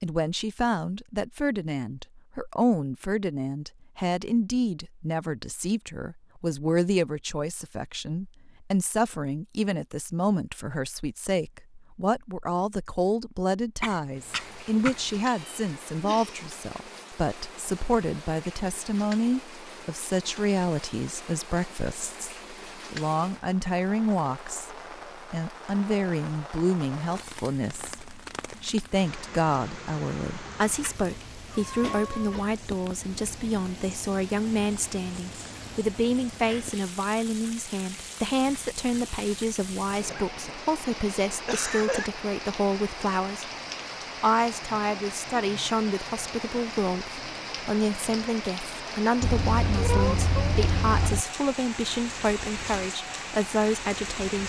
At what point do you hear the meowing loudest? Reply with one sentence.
The volume of the meowing peaks at 50 seconds.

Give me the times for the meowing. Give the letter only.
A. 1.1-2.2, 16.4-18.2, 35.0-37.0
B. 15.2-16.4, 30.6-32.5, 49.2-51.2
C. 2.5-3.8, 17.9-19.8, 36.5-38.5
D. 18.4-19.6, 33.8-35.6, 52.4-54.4
B.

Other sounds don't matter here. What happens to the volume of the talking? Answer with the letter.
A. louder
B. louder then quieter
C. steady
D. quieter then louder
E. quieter
C.